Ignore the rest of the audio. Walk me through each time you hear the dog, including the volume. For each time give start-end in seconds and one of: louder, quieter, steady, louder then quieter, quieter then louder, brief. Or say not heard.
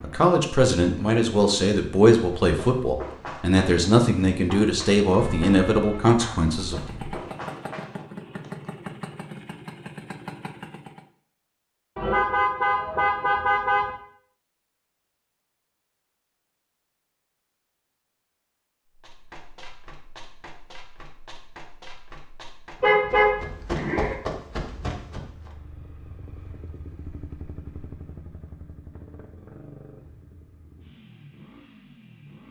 not heard.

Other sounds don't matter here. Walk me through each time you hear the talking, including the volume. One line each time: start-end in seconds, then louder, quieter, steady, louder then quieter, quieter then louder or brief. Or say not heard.
0.0-6.8 steady.